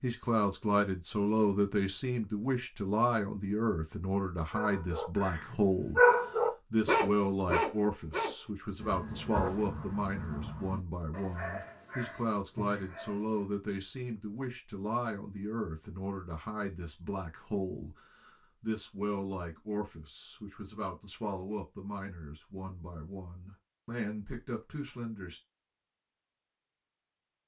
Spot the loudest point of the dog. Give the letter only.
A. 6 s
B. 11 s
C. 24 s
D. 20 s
A.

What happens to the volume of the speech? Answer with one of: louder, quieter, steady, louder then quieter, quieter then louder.
quieter.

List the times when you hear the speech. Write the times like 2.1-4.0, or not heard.
0.0-6.0, 6.7-25.4.